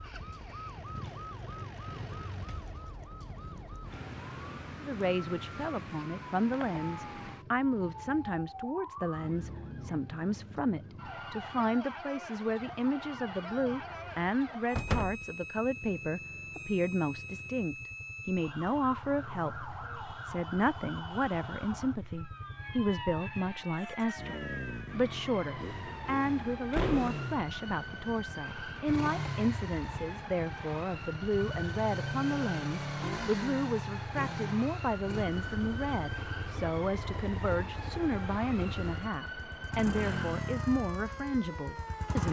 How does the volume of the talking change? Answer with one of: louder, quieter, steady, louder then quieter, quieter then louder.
steady.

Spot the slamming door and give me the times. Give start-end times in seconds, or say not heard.
14.8-15.2, 26.7-27.2.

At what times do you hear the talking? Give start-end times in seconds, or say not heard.
4.8-42.2.